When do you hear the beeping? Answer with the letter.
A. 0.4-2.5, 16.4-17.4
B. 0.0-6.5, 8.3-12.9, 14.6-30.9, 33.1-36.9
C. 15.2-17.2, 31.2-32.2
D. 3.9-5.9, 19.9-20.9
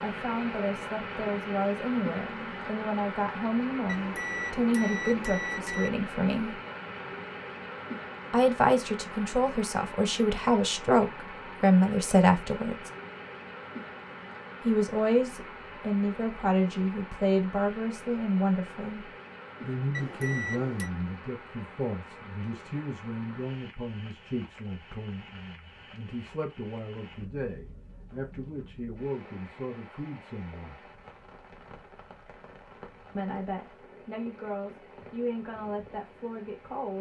D.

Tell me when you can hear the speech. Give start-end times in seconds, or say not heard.
0.0-6.5, 8.3-12.9, 14.6-30.9, 33.1-36.9.